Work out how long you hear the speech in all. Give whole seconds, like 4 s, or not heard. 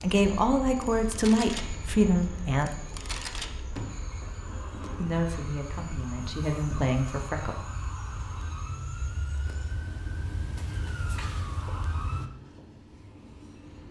5 s.